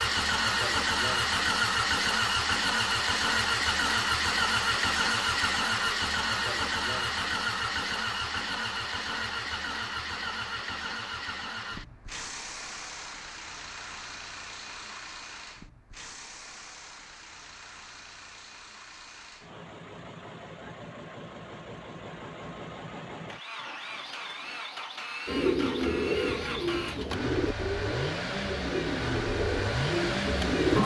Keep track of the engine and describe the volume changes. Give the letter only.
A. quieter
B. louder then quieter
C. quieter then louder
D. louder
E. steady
C.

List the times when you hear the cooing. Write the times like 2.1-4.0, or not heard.
25.2-30.8.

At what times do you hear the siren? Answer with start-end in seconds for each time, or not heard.
not heard.